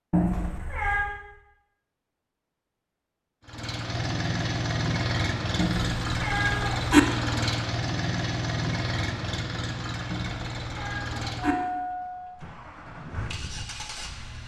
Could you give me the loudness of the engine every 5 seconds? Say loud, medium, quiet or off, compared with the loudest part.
loud, loud, medium.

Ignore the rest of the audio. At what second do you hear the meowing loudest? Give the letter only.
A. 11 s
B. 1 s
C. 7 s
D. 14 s
C.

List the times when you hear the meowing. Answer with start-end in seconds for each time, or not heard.
0.1-1.1, 5.5-7.0, 10.1-11.6.